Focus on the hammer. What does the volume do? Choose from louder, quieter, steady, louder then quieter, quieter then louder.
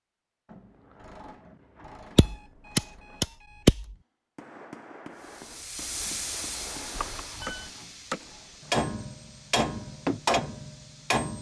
louder.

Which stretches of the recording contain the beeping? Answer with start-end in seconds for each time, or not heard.
2.1-4.0, 7.0-7.7.